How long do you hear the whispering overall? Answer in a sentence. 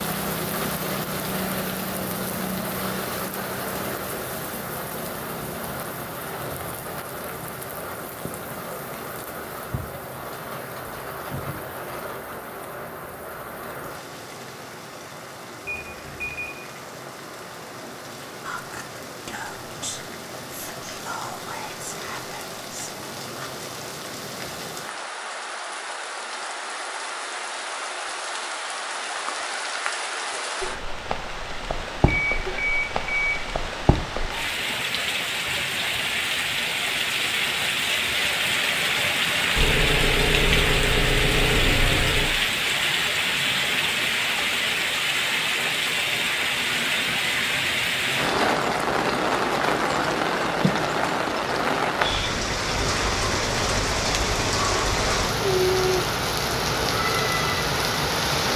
You can hear the whispering for 5 seconds altogether.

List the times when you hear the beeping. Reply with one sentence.
The beeping can be heard from 15.7 to 16.5 s, from 32.0 to 33.5 s and from 39.5 to 42.4 s.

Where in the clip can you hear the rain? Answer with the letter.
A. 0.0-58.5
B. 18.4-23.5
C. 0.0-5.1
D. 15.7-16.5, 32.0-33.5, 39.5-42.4
A.